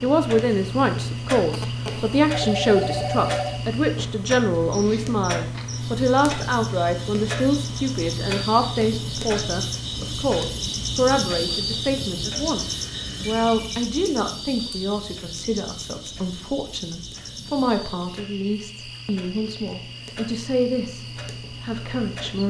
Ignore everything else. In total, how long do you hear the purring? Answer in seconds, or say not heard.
not heard.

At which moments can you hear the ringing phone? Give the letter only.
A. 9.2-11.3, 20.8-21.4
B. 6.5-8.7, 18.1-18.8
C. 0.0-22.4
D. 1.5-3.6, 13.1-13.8
D.